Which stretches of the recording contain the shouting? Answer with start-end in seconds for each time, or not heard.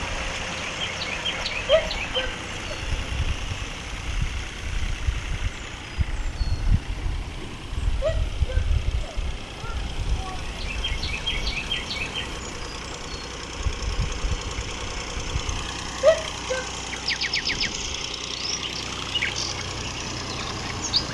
1.6-2.8, 8.0-10.4, 16.0-16.6.